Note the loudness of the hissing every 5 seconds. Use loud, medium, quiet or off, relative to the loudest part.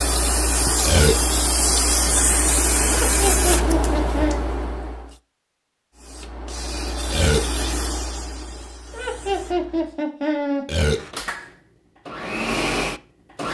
loud, medium, off.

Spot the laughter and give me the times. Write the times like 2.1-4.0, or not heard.
3.0-4.4, 8.9-10.7.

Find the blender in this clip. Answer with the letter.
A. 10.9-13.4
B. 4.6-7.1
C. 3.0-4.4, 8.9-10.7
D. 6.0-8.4
A.